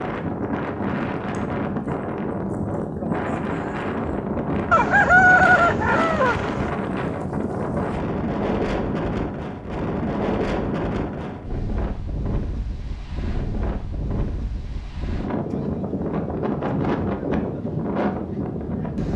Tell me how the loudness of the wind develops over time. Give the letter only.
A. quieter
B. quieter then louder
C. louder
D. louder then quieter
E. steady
B.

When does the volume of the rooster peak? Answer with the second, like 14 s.
5 s.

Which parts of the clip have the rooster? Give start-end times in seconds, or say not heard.
4.7-6.7.